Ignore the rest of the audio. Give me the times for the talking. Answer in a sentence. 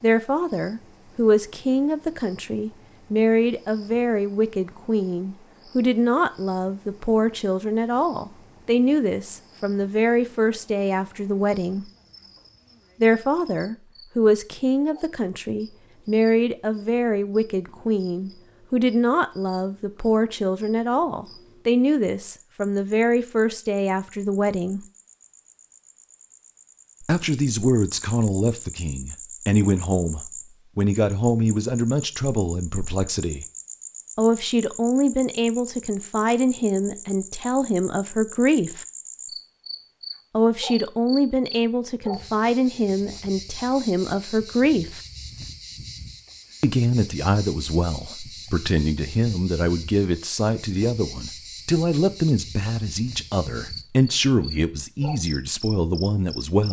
You can hear the talking from 0.0 to 11.9 s, from 13.0 to 24.8 s, from 27.0 to 33.5 s, from 34.1 to 38.9 s, from 40.3 to 45.0 s and from 46.6 to 56.6 s.